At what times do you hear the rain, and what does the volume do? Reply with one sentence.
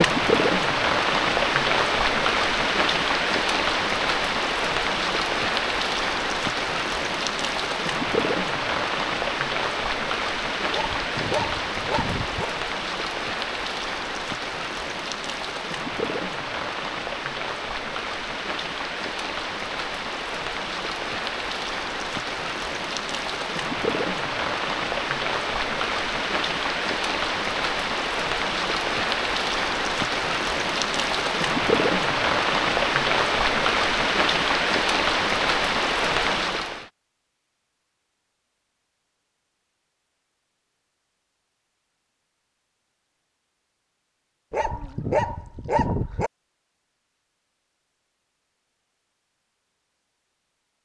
You can hear the rain from 0.0 to 36.9 s, getting quieter then louder.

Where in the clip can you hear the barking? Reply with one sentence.
You can hear the barking from 10.7 to 12.5 s and from 44.5 to 46.3 s.